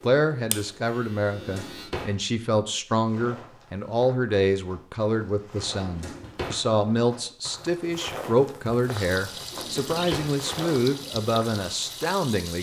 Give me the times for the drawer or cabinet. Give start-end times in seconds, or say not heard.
1.3-2.1, 5.8-6.6, 9.5-10.3.